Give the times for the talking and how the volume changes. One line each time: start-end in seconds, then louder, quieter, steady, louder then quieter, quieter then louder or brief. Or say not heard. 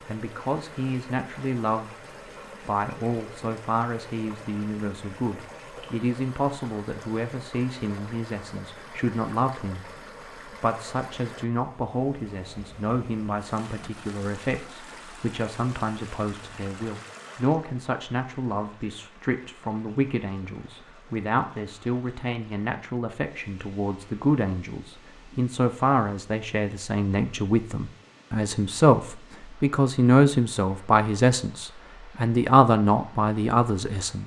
0.1-1.9 brief
2.6-34.2 louder.